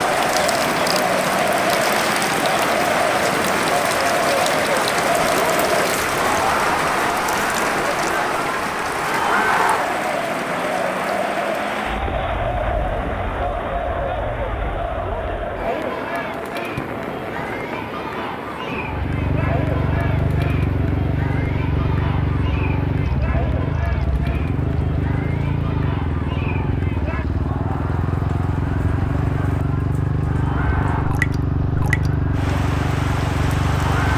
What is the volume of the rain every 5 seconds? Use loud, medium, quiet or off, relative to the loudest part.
loud, loud, medium, medium, quiet, quiet, medium.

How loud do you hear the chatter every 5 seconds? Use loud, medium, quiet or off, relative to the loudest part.
loud, loud, loud, medium, medium, quiet, medium.